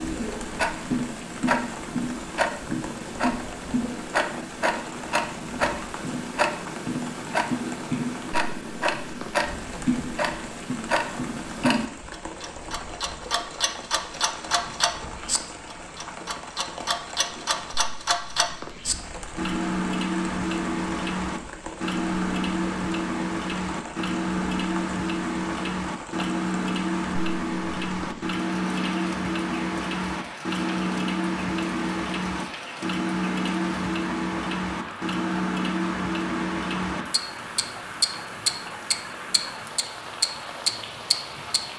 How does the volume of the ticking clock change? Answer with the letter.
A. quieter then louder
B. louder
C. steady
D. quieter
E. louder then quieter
C.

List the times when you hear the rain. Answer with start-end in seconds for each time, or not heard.
0.0-41.7.